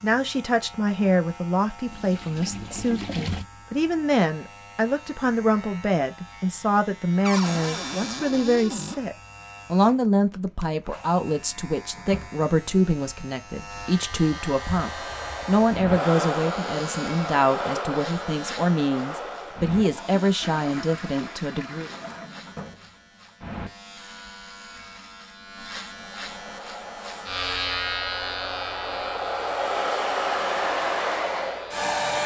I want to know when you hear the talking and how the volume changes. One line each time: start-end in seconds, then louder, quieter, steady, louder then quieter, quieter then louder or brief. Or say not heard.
0.0-21.9 steady.